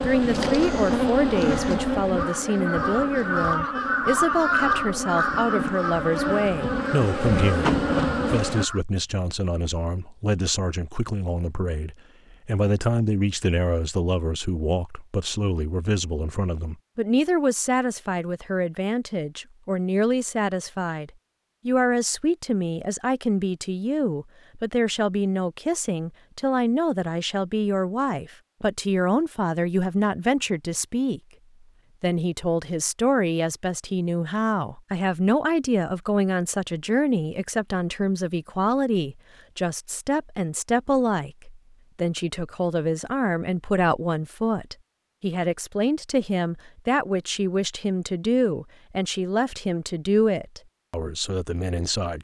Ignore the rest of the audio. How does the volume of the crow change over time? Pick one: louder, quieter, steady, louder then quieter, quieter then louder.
louder then quieter.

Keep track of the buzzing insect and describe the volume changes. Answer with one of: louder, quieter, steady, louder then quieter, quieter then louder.
quieter then louder.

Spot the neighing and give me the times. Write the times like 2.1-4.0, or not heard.
not heard.